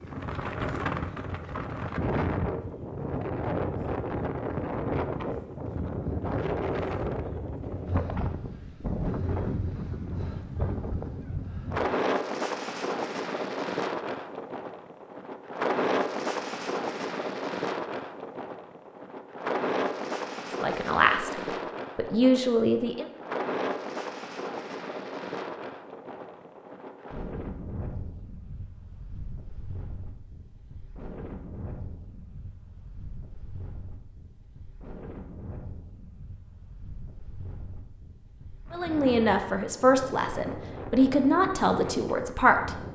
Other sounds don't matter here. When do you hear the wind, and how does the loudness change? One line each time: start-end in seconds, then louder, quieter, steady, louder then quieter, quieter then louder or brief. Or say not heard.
0.0-42.9 quieter.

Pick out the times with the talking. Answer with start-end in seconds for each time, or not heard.
20.6-23.1, 38.7-42.8.